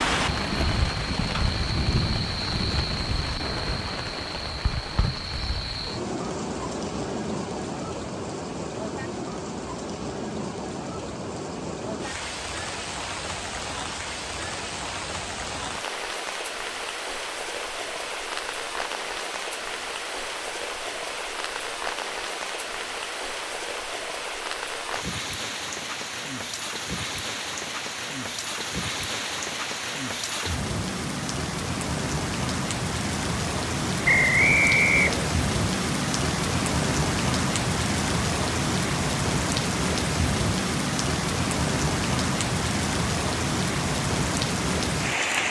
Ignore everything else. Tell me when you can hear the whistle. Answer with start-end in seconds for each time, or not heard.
34.0-35.3.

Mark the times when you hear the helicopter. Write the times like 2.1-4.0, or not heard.
not heard.